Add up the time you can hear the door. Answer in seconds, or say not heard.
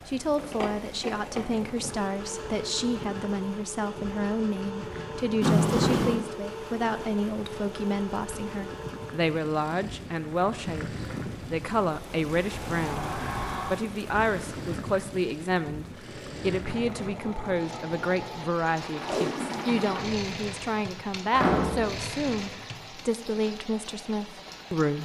3 s.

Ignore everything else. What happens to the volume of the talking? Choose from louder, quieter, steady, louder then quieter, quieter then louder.
steady.